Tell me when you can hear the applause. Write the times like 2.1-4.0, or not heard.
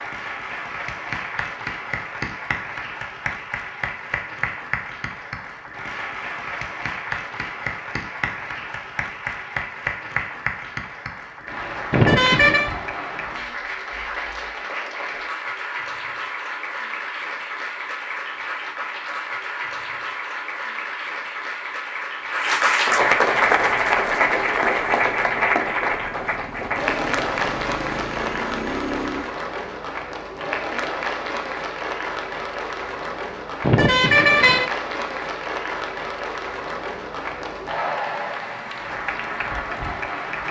0.0-40.4.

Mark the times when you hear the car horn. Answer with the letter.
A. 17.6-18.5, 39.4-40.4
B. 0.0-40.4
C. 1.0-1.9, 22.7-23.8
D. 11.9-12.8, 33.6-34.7
D.